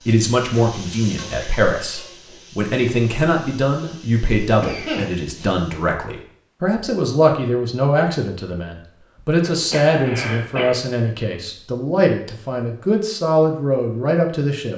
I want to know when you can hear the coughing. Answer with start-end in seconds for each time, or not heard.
4.6-5.5, 9.4-10.8.